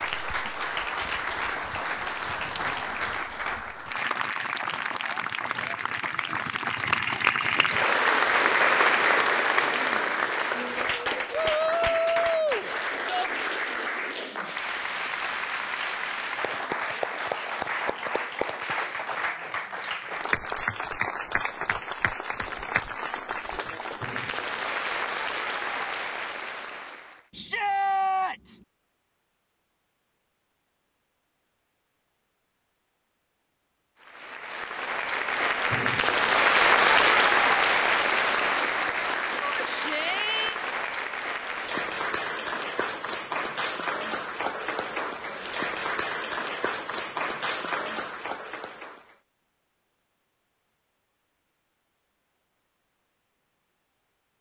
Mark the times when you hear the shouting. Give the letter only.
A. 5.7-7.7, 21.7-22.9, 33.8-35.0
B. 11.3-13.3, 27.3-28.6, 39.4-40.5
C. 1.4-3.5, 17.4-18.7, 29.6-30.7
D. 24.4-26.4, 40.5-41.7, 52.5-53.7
B.